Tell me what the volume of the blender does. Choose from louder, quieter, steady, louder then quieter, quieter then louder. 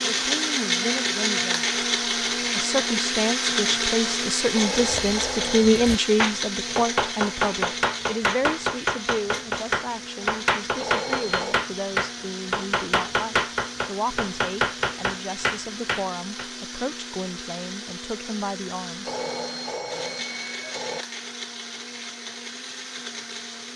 quieter.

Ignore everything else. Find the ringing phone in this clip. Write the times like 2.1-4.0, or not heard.
4.5-5.8, 10.8-11.7, 19.0-21.1.